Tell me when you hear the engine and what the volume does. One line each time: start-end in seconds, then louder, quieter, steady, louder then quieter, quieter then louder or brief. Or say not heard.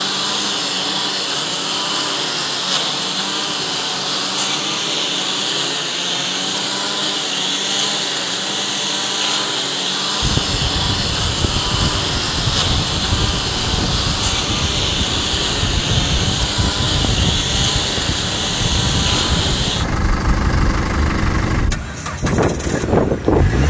0.0-23.6 steady.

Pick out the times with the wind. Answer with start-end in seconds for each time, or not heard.
10.2-23.6.